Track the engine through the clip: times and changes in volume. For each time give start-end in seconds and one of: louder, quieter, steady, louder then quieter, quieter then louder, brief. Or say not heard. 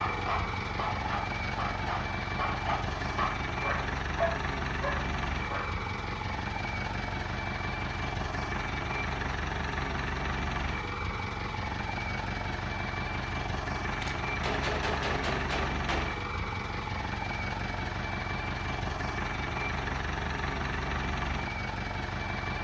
0.0-22.5 steady.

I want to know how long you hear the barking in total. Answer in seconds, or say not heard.
6 s.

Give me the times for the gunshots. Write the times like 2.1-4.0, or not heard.
13.8-16.2.